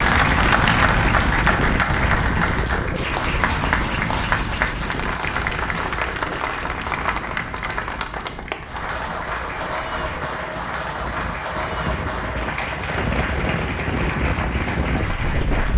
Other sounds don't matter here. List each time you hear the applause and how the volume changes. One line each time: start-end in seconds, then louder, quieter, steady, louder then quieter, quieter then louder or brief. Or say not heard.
0.0-15.7 quieter.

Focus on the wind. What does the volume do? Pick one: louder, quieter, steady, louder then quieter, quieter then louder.
quieter then louder.